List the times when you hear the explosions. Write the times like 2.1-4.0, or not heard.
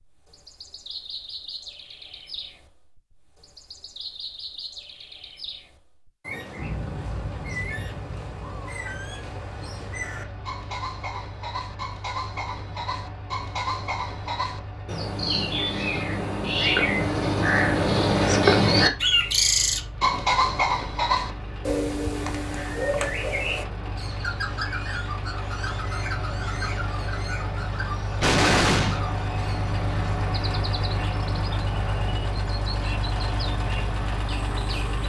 6.6-8.6, 28.2-29.0.